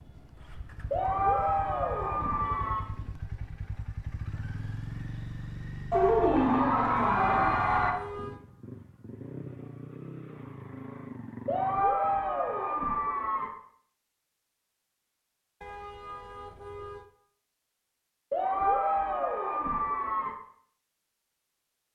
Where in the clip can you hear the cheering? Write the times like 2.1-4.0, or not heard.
0.9-2.9, 5.9-8.0, 11.4-13.5, 18.3-20.3.